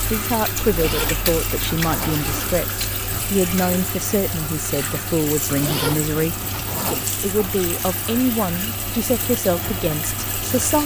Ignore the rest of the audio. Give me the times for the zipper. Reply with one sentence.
The zipper can be heard from 0.7 to 2.5 s and from 5.5 to 7.0 s.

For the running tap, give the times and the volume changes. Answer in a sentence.
You can hear the running tap from 0.0 to 10.8 s, at a steady volume.